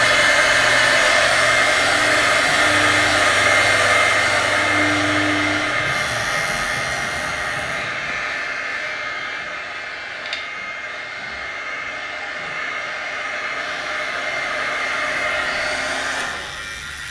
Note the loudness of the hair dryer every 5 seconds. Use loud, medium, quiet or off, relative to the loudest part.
loud, medium, medium, medium.